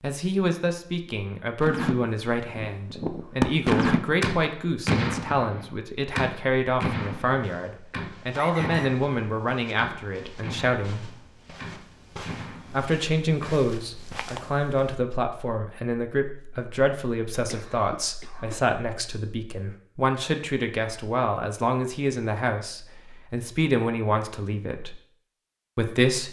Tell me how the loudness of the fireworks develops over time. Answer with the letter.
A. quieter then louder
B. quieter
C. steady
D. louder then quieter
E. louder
B.